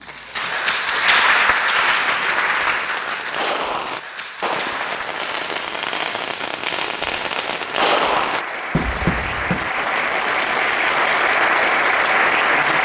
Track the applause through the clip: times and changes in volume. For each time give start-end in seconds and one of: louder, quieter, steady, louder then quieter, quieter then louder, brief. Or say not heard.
0.0-12.8 quieter then louder.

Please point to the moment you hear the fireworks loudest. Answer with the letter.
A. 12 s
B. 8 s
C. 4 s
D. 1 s
B.